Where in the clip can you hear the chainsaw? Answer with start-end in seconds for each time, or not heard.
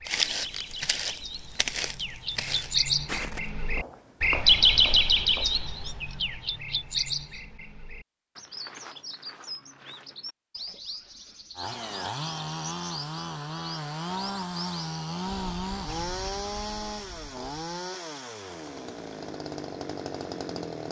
11.6-20.8.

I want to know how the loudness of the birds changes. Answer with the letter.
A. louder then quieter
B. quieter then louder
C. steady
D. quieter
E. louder
A.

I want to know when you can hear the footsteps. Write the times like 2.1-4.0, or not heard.
0.1-5.5.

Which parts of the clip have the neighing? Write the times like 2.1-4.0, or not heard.
not heard.